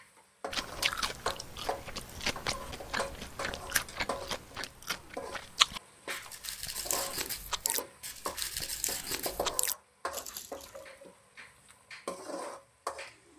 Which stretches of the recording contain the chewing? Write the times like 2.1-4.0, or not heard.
0.5-10.8.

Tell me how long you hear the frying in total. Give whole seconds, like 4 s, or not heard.
13 s.